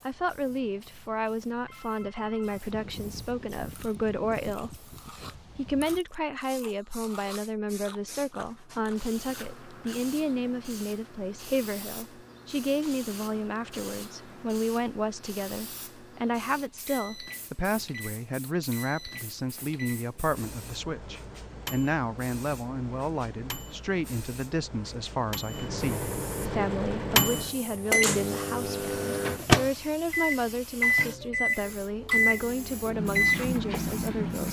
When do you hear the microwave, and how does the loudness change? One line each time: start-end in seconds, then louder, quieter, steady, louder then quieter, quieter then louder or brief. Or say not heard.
16.5-34.4 louder.